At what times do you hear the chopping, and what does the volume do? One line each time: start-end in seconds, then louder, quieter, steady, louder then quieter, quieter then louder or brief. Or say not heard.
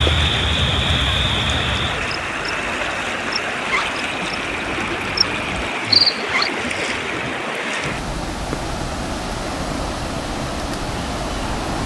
not heard.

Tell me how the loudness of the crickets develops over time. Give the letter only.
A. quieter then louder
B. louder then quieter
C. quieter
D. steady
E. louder
A.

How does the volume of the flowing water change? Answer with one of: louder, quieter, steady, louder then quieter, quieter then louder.
steady.